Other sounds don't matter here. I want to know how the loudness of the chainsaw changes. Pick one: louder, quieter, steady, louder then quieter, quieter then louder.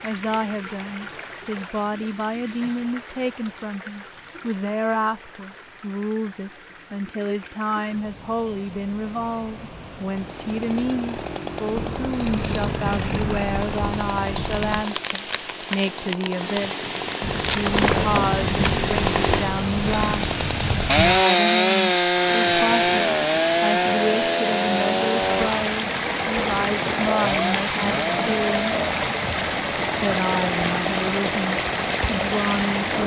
louder then quieter.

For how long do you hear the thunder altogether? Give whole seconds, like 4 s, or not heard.
7 s.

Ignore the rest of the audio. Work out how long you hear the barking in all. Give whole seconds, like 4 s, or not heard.
not heard.